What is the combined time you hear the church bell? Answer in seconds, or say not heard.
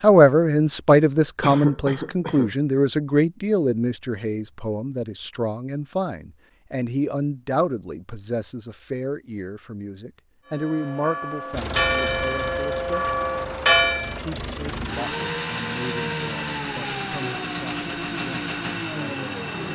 4 s.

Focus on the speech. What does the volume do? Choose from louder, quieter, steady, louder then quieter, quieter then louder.
quieter.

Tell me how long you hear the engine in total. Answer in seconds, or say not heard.
8 s.